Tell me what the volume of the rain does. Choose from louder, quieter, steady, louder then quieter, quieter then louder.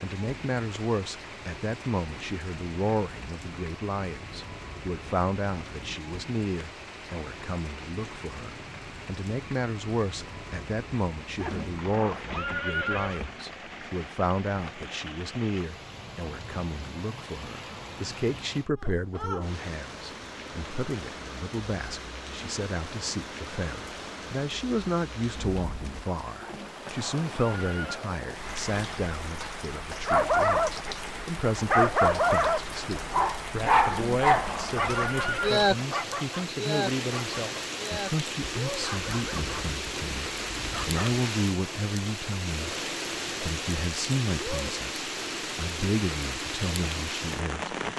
louder.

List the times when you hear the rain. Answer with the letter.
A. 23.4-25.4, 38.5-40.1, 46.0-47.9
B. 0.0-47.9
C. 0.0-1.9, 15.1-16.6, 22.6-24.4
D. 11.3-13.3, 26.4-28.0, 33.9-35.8
B.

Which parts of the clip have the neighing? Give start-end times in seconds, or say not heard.
11.3-13.3, 26.4-28.0, 33.9-35.8.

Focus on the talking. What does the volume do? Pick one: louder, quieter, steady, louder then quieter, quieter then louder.
steady.